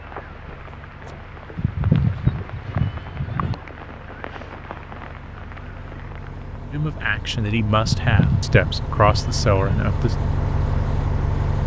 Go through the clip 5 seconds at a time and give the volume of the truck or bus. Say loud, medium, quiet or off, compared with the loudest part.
quiet, medium, loud.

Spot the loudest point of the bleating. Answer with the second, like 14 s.
2 s.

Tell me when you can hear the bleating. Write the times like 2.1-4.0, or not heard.
1.6-3.5, 7.8-9.8.